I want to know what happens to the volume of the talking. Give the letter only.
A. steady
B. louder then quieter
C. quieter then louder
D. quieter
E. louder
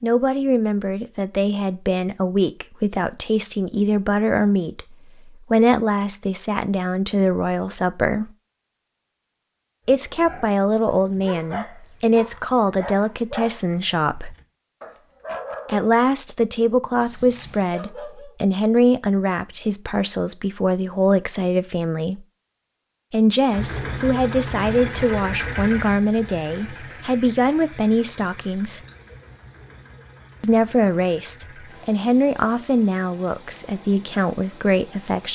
A.